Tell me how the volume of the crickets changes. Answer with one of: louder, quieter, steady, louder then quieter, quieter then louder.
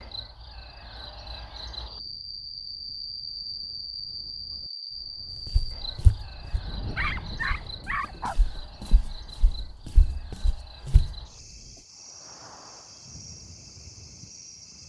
quieter.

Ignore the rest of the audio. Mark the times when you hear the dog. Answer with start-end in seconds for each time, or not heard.
6.7-8.3.